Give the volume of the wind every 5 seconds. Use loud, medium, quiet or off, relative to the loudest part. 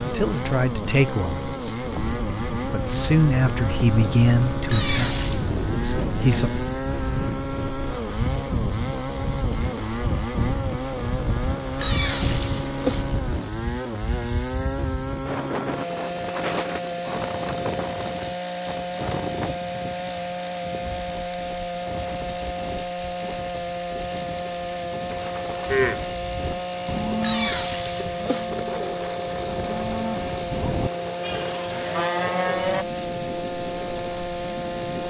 loud, loud, loud, loud, medium, medium, medium.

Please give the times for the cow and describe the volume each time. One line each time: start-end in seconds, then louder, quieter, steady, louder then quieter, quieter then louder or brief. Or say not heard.
25.6-32.9 quieter then louder.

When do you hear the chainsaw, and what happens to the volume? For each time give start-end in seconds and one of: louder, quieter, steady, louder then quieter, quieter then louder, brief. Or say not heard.
0.0-35.0 steady.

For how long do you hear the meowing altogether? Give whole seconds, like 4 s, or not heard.
3 s.